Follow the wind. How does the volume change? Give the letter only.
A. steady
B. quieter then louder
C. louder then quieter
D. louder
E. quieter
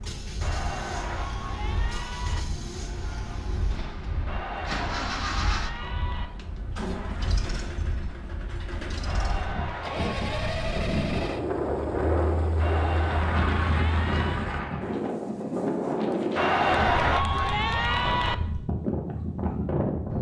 D.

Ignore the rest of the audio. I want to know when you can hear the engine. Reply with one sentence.
You can hear the engine from 0.0 to 14.6 s.